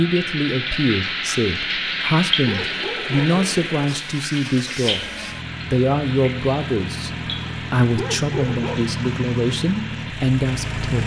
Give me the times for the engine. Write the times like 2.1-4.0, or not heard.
2.5-11.0.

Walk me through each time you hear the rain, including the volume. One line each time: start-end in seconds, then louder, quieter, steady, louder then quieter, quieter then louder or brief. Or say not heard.
0.0-11.0 quieter.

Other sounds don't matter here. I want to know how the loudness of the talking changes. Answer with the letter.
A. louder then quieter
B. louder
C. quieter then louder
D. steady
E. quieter
D.